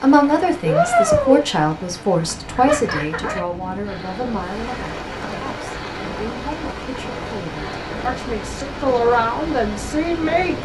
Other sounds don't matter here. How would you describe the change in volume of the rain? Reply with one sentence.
The volume of the rain goes down.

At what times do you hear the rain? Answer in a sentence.
The rain can be heard from 0.0 to 10.5 s.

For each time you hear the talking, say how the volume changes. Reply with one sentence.
The talking can be heard from 0.0 to 10.5 s, getting quieter then louder.